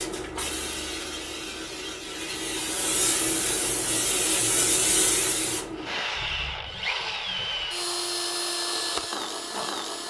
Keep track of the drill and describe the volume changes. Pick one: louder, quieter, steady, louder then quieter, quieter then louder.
steady.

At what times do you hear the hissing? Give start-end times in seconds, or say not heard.
0.0-6.2.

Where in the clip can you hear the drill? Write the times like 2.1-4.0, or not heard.
5.8-10.0.